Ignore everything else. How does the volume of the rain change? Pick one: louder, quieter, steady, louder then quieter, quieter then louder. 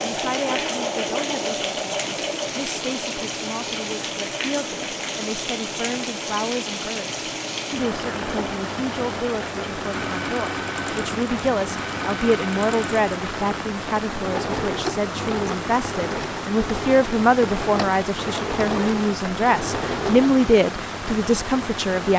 steady.